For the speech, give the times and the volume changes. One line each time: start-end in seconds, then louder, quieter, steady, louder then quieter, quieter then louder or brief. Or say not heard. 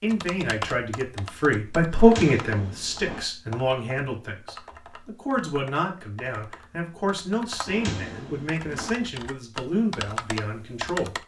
0.0-11.2 quieter.